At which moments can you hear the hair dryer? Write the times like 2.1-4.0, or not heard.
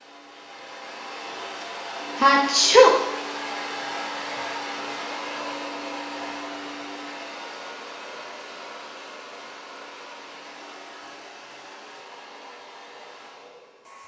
0.0-14.0.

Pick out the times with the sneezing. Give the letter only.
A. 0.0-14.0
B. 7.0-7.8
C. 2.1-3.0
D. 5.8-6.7
C.